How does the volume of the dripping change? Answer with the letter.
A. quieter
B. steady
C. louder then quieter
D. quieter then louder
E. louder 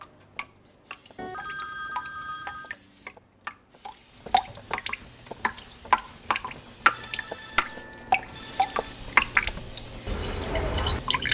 E.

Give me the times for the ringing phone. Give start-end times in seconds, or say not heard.
1.1-2.8, 6.9-8.9.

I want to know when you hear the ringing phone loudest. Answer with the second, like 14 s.
2 s.